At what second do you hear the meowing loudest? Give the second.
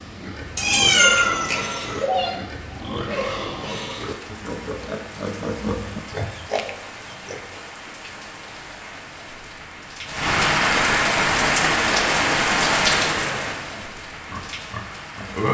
1 s.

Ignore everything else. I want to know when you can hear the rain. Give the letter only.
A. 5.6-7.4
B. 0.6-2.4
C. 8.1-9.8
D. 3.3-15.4
D.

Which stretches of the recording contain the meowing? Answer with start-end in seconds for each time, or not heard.
0.6-2.4.